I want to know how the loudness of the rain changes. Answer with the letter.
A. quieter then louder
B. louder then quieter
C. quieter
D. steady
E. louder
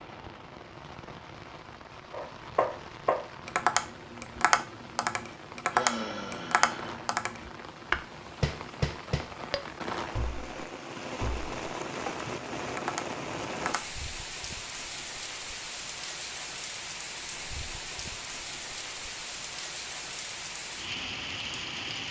E.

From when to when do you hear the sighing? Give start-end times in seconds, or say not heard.
5.7-7.0.